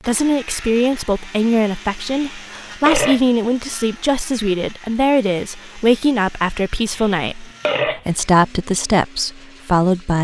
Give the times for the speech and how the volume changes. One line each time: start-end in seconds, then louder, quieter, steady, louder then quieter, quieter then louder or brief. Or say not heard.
0.1-10.1 steady.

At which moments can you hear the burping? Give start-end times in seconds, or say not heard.
2.1-3.2, 6.9-8.0.